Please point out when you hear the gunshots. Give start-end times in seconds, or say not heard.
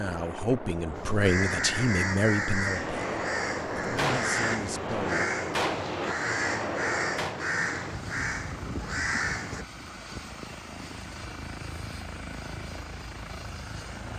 2.8-7.4.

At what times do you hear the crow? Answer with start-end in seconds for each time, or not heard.
0.9-9.7.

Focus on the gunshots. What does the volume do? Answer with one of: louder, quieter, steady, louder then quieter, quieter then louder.
steady.